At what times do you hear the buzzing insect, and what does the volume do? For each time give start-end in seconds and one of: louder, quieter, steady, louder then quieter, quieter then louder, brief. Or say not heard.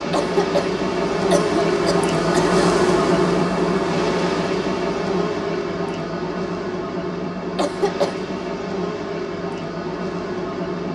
0.0-10.9 quieter.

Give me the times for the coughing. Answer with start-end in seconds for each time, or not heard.
0.1-2.7, 7.5-8.2.